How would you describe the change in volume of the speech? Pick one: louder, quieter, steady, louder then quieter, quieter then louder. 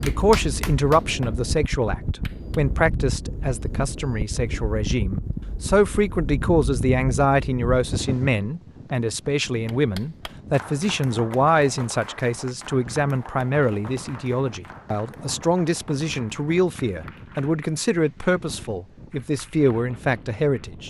steady.